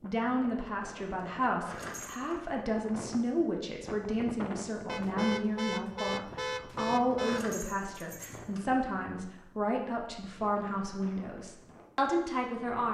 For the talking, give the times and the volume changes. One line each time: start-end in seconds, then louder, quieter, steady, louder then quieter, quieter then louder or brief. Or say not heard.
0.0-12.8 steady.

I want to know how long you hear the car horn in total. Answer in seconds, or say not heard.
3 s.